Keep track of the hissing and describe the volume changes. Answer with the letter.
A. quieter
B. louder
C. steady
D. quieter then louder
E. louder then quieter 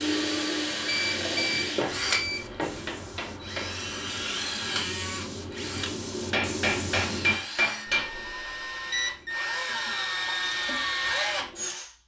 B.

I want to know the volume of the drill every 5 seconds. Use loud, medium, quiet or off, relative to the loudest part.
loud, medium, loud.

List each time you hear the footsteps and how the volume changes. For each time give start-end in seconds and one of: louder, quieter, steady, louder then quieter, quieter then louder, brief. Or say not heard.
not heard.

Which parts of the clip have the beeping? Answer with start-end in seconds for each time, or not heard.
0.8-2.6, 7.8-9.2.